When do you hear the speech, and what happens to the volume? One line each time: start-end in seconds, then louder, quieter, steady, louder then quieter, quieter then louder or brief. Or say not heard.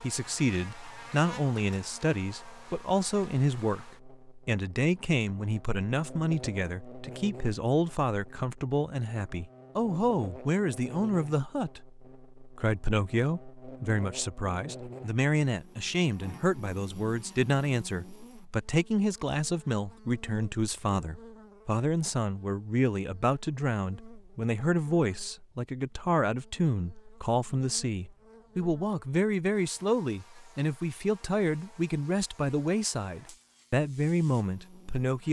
0.0-35.2 steady.